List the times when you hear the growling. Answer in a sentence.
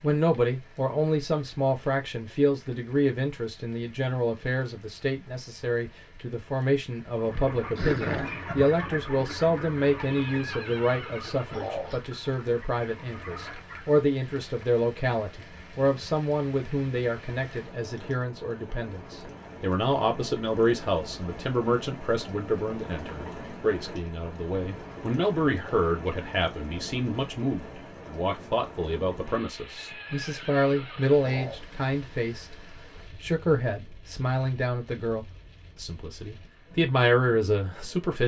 You can hear the growling from 7.8 to 8.3 s.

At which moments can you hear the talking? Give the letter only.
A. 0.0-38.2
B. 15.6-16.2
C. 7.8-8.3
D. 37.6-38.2
A.